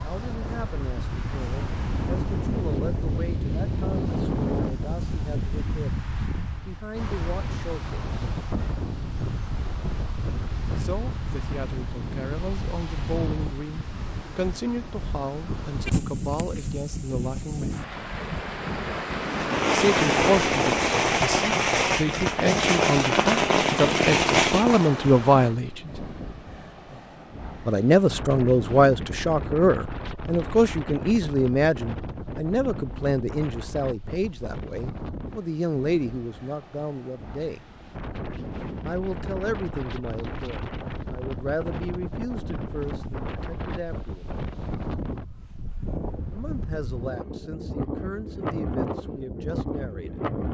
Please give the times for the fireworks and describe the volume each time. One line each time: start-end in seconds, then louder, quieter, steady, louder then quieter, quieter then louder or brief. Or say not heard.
19.2-24.9 steady.